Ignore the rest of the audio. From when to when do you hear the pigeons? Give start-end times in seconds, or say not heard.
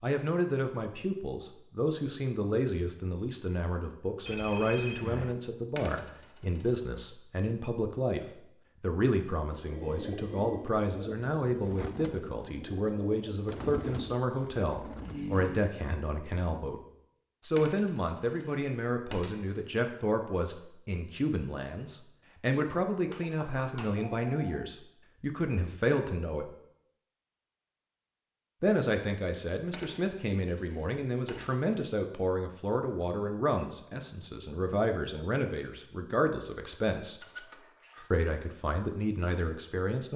9.5-15.8.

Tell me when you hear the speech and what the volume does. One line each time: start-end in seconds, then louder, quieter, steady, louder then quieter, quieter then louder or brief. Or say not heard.
0.0-16.8 steady
17.4-26.5 steady
28.6-37.2 steady
38.1-40.1 brief.